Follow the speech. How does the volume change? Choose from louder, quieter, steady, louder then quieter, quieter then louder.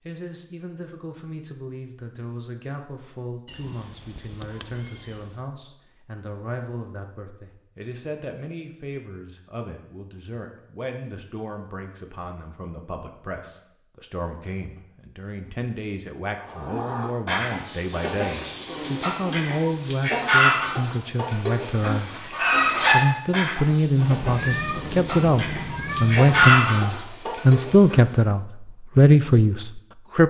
louder.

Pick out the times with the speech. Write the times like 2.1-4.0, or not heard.
0.1-30.2.